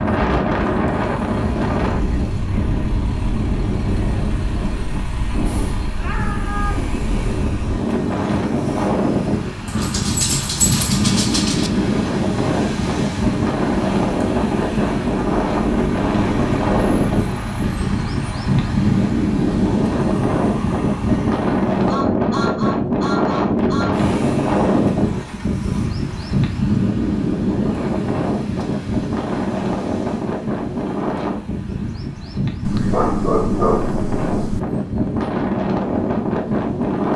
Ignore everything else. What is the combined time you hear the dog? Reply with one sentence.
You can hear the dog for 4 seconds altogether.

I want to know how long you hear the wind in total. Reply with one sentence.
The wind can be heard for 37 seconds in total.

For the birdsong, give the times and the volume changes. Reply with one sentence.
The birdsong can't be heard in this clip.